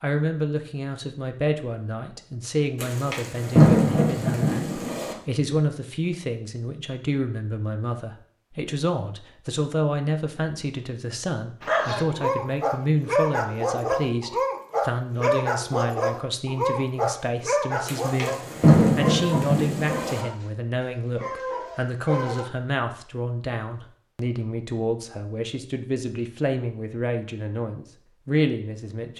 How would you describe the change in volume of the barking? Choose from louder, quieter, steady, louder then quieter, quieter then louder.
quieter.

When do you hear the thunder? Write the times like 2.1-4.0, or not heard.
2.8-5.2, 17.9-20.2.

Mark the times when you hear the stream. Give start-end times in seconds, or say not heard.
not heard.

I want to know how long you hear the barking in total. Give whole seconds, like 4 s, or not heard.
11 s.